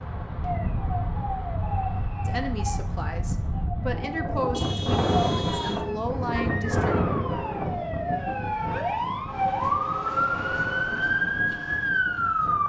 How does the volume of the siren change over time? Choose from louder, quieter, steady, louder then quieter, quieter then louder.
louder.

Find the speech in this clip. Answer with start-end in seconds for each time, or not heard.
2.2-7.0.